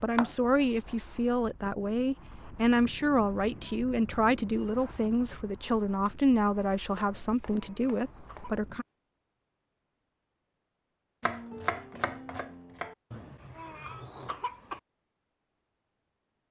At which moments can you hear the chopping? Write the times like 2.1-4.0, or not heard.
0.1-0.9, 6.9-8.7, 11.2-12.9.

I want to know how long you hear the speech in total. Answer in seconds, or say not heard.
9 s.